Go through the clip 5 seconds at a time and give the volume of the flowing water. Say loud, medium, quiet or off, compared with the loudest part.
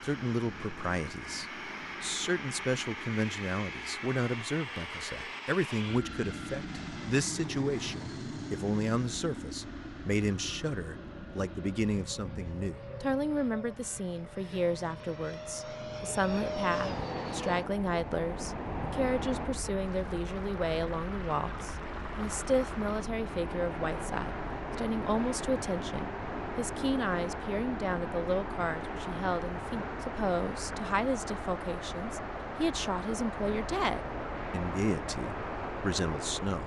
off, off, off, loud, loud, loud, loud, loud.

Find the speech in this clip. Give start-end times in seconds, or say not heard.
0.0-36.6.